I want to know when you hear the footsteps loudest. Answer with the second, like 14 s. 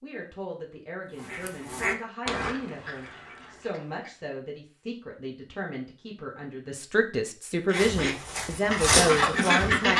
9 s.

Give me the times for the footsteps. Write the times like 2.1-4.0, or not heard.
7.7-9.9.